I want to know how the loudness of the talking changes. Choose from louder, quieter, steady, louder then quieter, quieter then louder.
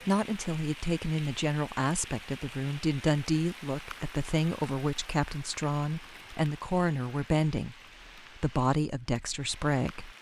steady.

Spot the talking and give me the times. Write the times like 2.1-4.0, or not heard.
0.1-10.1.